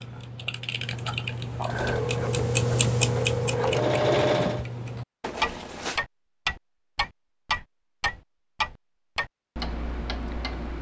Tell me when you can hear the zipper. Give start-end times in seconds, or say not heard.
5.2-6.0.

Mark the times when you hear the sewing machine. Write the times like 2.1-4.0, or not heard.
1.6-4.7.